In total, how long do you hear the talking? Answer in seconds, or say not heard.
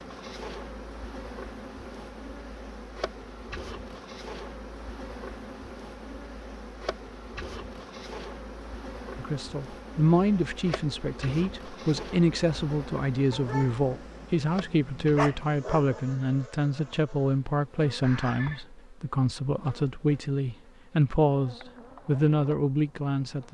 14 s.